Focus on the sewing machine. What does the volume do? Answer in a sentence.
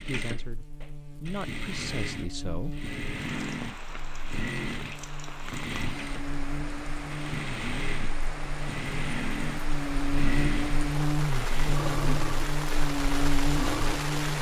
The loudness of the sewing machine stays about the same.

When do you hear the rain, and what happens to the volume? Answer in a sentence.
You can hear the rain from 3.1 to 14.3 s, getting louder.